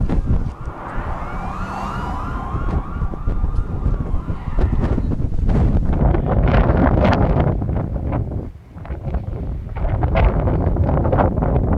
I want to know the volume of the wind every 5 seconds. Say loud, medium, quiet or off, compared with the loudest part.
medium, loud, loud.